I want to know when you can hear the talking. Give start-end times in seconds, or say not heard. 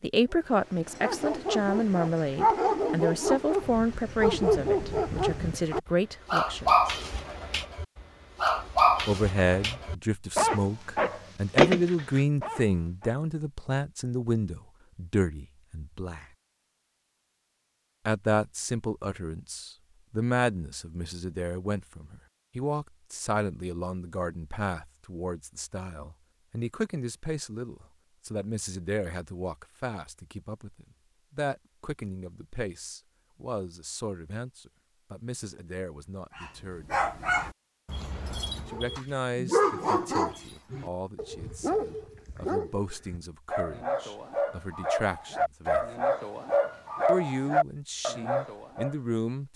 0.0-7.0, 9.1-16.2, 18.1-37.0, 38.6-45.9, 47.0-49.5.